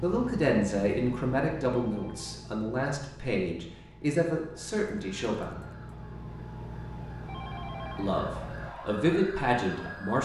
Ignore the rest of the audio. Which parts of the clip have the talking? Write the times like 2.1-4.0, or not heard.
0.0-5.7, 8.0-10.1.